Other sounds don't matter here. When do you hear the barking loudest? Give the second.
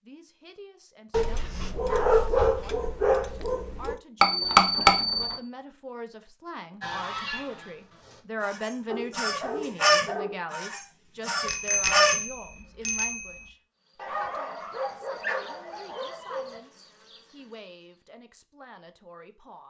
2 s.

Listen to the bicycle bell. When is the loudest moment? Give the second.
5 s.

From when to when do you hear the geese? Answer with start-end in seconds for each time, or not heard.
6.8-12.2.